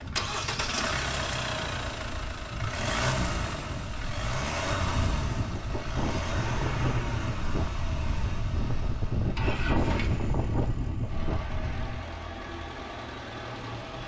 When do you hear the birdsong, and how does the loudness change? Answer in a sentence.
The birdsong can't be heard in this clip.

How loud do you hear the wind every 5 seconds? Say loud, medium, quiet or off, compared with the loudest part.
medium, loud, loud.